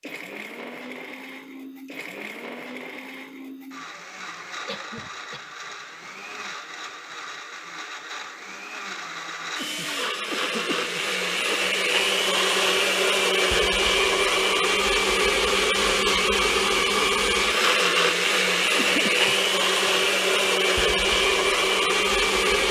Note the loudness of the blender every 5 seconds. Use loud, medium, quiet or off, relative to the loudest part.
quiet, quiet, loud, loud, loud.